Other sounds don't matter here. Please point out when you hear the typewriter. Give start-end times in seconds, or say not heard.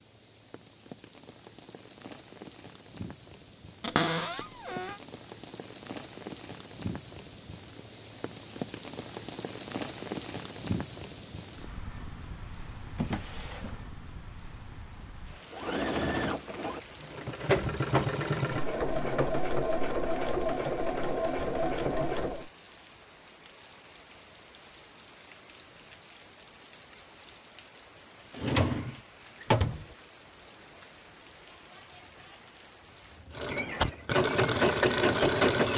not heard.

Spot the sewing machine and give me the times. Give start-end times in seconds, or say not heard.
15.5-22.5, 33.3-35.7.